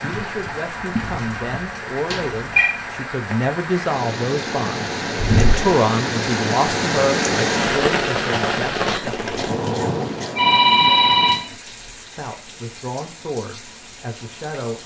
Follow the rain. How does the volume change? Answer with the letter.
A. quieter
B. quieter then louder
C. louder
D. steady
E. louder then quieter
E.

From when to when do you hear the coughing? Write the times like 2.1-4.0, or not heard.
8.8-10.4.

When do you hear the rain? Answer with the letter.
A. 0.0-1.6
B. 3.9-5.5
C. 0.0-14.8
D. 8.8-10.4
C.